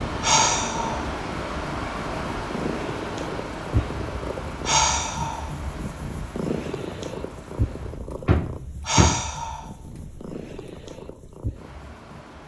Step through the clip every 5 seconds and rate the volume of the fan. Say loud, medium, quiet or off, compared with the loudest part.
loud, medium, quiet.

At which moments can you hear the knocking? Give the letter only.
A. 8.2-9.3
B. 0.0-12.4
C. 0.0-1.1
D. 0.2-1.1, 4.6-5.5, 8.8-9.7
A.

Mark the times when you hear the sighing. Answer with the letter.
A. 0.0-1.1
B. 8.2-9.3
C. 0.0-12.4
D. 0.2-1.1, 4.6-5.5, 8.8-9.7
D.